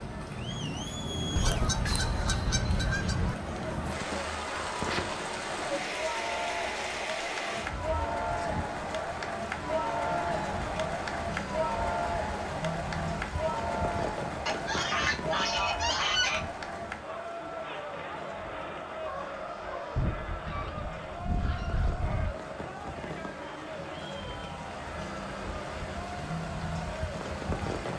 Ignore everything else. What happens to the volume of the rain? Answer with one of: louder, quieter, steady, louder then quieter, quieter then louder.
quieter then louder.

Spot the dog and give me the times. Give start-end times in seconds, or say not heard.
19.0-20.1.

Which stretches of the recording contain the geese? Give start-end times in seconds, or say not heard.
1.4-3.4, 14.4-16.4, 19.9-22.4.